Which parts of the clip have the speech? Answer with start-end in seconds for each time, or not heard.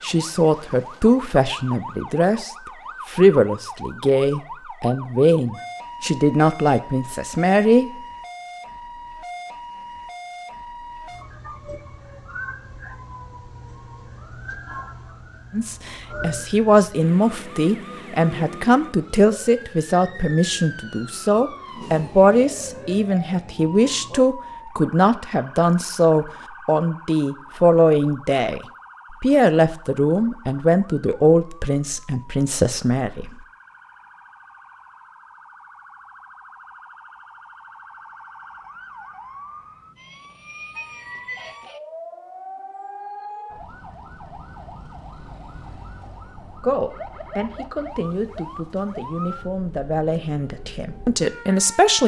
0.0-2.5, 3.1-7.9, 15.5-33.3, 46.6-52.0.